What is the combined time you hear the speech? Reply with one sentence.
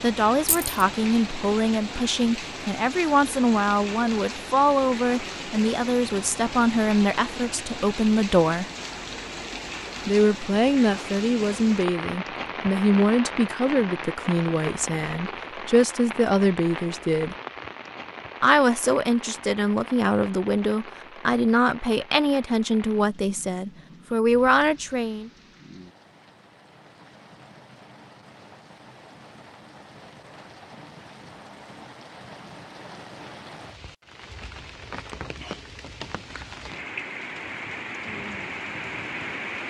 You can hear the speech for 23 seconds altogether.